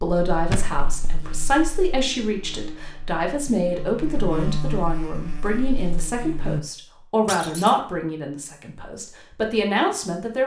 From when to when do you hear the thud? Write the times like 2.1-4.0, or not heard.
0.5-1.1, 7.2-7.8.